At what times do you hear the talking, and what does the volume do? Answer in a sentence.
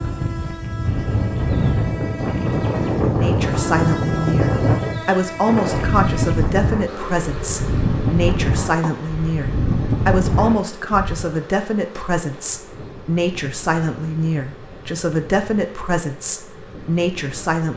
The talking can be heard from 3.1 to 17.7 s, at a steady volume.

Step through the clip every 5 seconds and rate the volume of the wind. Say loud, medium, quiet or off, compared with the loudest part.
loud, loud, medium, quiet.